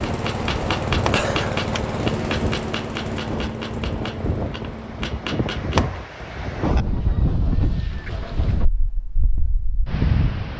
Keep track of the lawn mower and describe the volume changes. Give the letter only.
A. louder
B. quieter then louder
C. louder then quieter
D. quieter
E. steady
D.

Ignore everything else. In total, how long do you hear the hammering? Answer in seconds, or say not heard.
6 s.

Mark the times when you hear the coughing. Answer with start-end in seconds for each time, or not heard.
1.1-1.6.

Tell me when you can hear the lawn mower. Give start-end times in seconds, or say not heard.
0.0-5.5.